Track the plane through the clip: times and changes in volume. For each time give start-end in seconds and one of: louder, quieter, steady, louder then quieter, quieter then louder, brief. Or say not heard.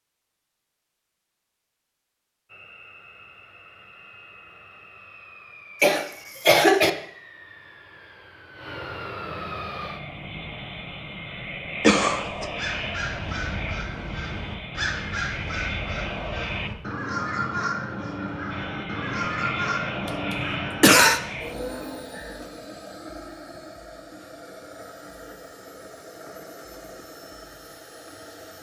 2.5-16.7 louder
18.5-28.5 quieter.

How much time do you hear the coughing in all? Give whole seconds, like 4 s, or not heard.
3 s.